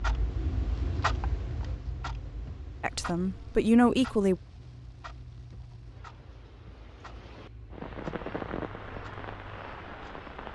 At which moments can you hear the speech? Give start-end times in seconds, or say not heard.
2.8-4.3.